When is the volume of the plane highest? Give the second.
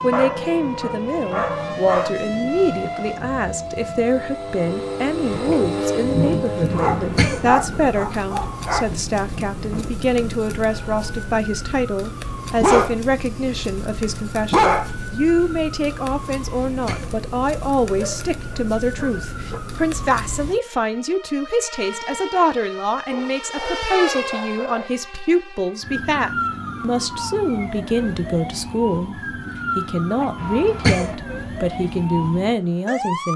6 s.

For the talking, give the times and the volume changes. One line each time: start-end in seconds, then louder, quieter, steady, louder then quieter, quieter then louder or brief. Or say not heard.
0.0-33.3 steady.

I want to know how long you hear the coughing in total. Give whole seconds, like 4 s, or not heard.
2 s.